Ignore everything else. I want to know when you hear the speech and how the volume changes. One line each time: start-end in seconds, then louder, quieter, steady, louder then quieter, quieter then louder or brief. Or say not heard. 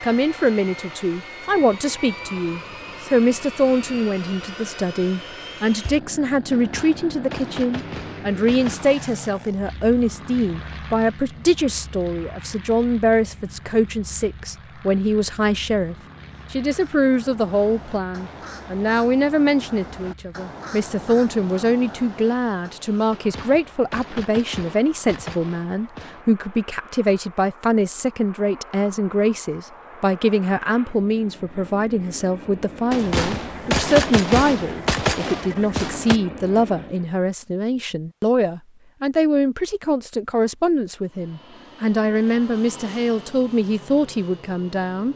0.0-45.1 steady.